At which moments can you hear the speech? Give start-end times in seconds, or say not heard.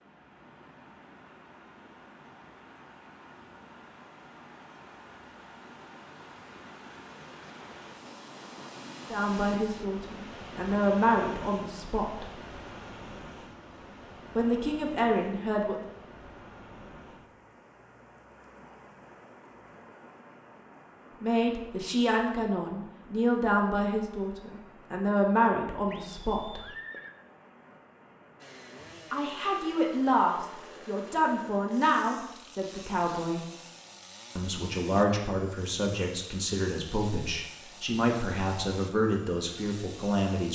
9.1-12.2, 14.3-15.9, 21.2-26.6, 29.1-33.5, 34.4-40.5.